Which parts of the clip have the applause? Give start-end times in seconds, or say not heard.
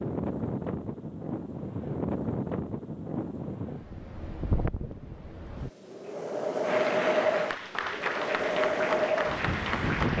6.6-10.1.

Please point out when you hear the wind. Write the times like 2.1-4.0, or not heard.
0.0-10.1.